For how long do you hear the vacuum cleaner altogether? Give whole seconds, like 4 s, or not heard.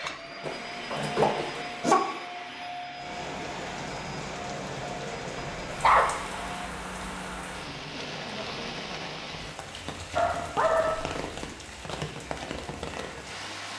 7 s.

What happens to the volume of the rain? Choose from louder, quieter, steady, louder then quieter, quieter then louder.
steady.